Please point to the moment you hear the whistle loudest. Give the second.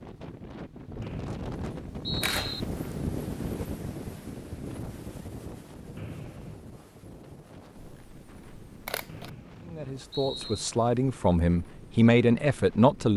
2 s.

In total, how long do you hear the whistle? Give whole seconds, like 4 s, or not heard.
4 s.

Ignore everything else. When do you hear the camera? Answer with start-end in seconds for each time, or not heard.
2.2-3.0, 7.8-9.3.